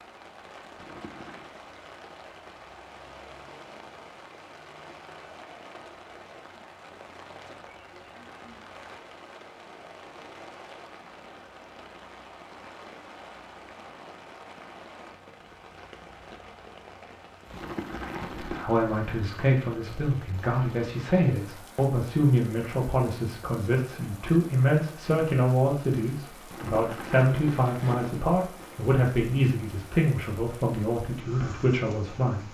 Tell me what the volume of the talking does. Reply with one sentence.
The volume of the talking stays about the same.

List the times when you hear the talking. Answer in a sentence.
The talking can be heard from 18.4 to 32.4 s.